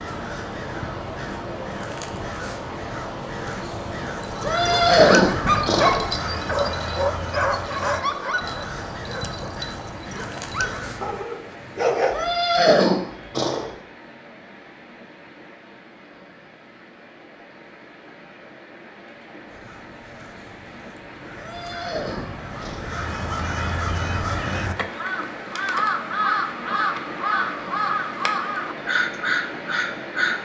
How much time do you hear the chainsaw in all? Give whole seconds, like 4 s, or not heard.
not heard.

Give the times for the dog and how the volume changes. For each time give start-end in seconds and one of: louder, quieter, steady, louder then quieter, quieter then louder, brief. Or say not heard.
4.2-12.3 quieter then louder.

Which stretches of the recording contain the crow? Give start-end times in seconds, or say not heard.
0.0-11.2, 19.4-30.4.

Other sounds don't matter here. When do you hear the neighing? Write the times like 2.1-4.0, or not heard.
4.4-6.0, 12.1-13.7, 21.4-23.0.